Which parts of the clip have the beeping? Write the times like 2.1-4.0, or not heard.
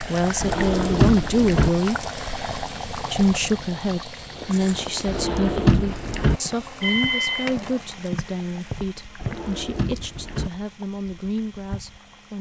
6.8-7.5.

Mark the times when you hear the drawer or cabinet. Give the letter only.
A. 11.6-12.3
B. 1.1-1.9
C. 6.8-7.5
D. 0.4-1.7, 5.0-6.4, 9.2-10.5
D.